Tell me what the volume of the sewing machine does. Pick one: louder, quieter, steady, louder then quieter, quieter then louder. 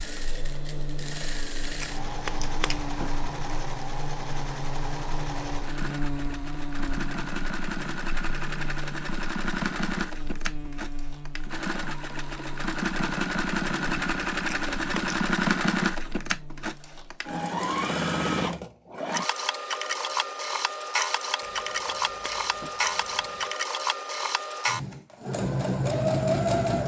louder.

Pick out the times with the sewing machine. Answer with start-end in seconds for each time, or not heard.
0.0-26.8.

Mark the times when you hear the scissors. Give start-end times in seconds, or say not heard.
1.8-3.2, 14.4-15.3, 21.4-23.5.